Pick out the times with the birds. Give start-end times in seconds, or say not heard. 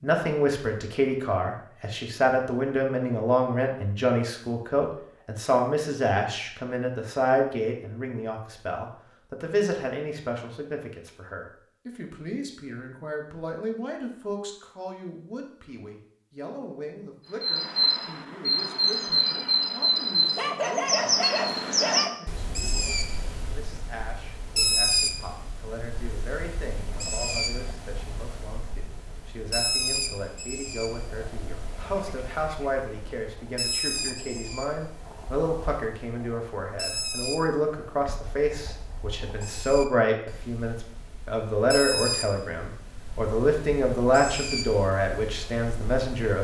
17.4-46.4.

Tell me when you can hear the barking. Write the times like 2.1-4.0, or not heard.
20.4-22.2.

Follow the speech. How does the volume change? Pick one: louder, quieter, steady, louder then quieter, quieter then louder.
quieter then louder.